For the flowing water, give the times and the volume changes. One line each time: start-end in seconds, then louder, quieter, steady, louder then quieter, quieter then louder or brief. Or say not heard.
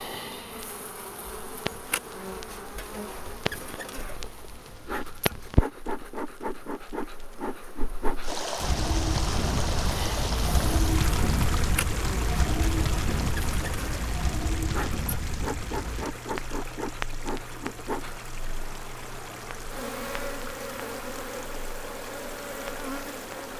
8.2-23.5 quieter.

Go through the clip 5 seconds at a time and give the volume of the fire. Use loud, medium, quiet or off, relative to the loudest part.
medium, loud, loud, medium, quiet.